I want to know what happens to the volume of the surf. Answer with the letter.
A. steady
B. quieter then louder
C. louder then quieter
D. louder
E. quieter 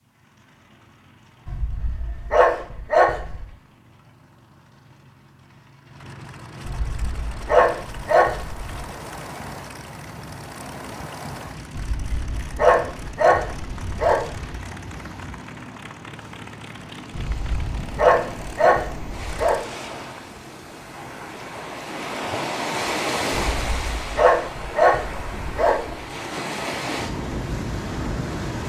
D.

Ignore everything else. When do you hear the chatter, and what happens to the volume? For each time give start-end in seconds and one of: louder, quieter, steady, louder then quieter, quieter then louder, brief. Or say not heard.
not heard.